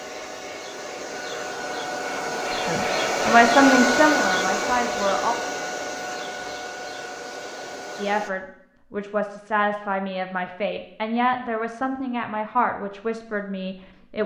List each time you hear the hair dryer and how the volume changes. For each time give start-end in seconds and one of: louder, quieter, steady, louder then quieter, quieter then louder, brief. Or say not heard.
0.0-8.3 louder then quieter.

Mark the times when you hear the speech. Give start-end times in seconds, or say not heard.
2.5-5.3, 8.0-14.2.